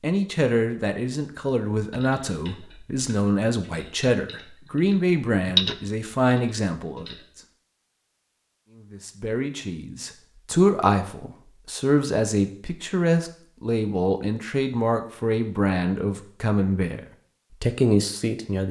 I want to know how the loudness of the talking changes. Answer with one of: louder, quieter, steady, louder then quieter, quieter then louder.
steady.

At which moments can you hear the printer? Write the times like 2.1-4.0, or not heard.
not heard.